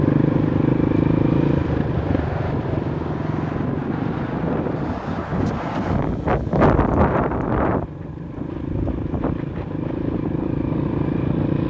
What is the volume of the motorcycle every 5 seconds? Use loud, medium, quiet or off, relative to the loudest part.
loud, medium, loud.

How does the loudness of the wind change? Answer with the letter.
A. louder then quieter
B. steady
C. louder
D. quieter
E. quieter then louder
A.